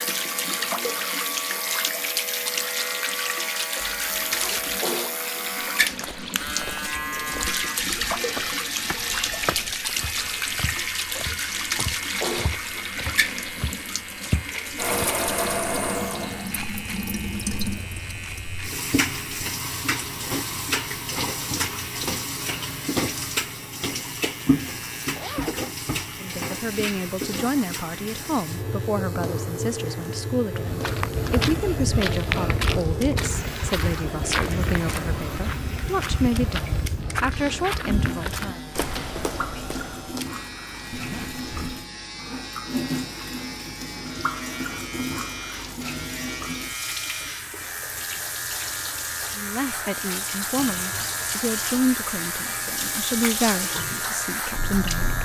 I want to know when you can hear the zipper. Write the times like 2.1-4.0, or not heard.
3.8-4.8, 25.1-25.6, 40.9-41.9.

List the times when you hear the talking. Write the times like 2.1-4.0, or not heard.
26.2-38.6, 49.4-55.2.